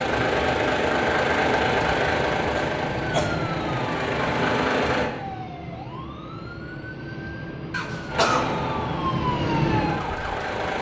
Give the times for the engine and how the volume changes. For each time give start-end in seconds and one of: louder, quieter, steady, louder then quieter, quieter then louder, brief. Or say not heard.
0.0-5.1 quieter then louder
8.1-10.7 brief.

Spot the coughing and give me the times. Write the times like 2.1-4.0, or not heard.
2.4-3.4, 7.7-8.4.